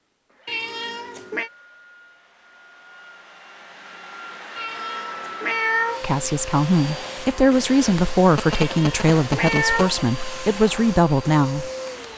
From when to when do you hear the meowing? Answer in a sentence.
The meowing can be heard from 0.5 to 1.5 s, from 4.5 to 6.2 s and from 8.7 to 9.9 s.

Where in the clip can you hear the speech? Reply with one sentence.
You can hear the speech from 6.0 to 11.7 s.